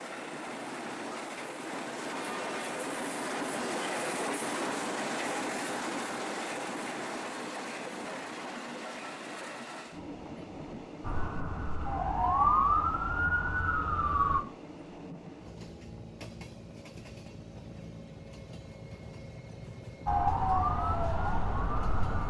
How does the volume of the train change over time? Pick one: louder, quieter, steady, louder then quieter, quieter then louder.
quieter.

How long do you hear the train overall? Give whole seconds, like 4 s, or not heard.
22 s.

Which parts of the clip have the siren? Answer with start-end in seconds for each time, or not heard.
11.0-14.4, 20.1-22.2.